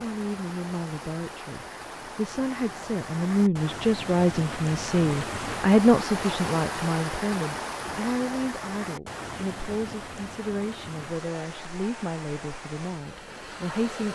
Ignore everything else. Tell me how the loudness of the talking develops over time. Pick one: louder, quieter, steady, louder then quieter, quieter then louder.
louder then quieter.